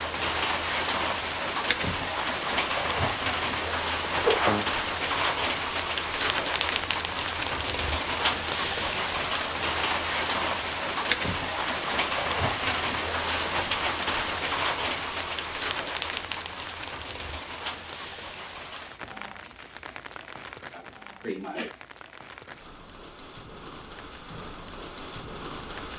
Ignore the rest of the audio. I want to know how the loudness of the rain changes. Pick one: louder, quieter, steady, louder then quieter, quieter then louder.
quieter.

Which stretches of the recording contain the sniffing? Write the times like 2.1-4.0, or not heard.
4.0-4.7, 12.5-13.6, 20.7-21.8.